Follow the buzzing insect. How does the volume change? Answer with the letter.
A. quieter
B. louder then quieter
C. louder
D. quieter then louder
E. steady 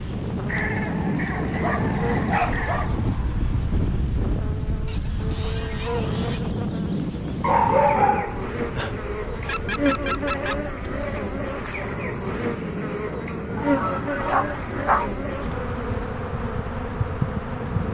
C.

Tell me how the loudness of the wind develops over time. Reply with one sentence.
The loudness of the wind goes down.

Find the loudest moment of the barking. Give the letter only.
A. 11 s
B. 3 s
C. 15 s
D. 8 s
D.